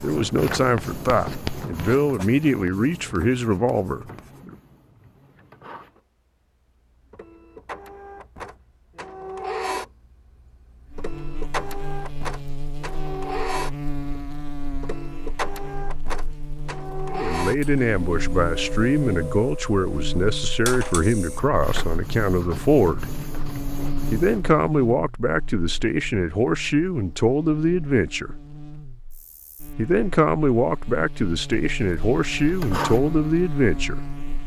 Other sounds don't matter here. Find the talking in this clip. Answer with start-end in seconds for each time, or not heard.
0.0-4.5, 17.1-23.1, 24.1-28.4, 29.8-34.0.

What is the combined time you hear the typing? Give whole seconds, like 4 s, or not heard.
not heard.